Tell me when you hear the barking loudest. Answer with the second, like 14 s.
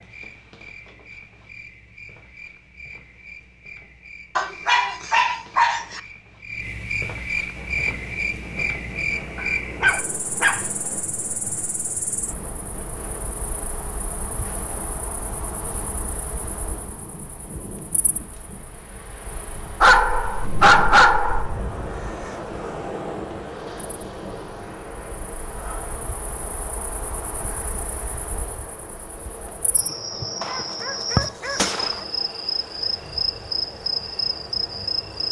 21 s.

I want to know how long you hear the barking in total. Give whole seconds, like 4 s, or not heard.
6 s.